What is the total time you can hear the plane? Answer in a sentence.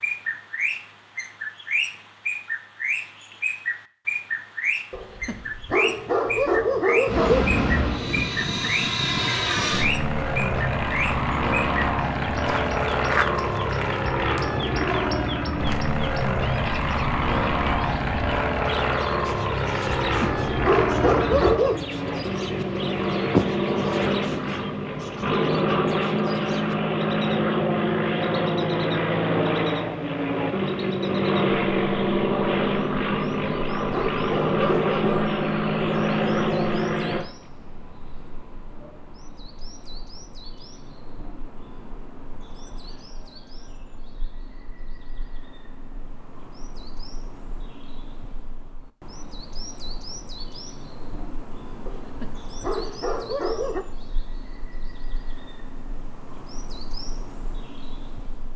The plane can be heard for 30 seconds in total.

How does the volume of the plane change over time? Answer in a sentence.
The volume of the plane stays about the same.